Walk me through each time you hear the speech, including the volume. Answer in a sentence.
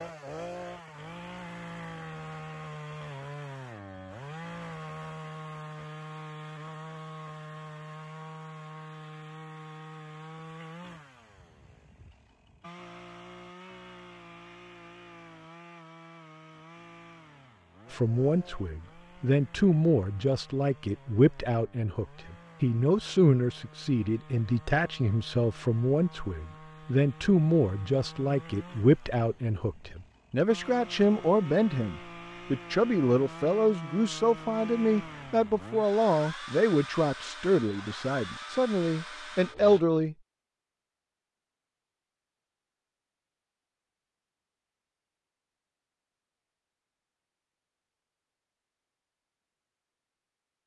You can hear the speech from 17.9 to 40.1 s, at a steady volume.